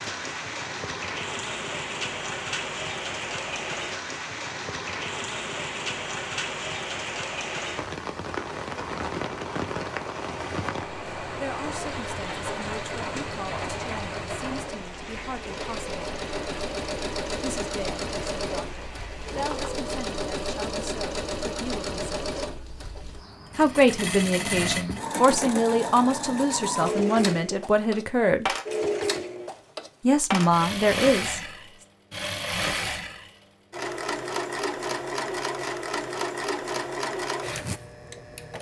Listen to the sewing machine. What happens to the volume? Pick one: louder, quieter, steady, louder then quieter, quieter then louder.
louder.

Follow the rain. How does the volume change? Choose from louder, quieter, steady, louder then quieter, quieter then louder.
quieter.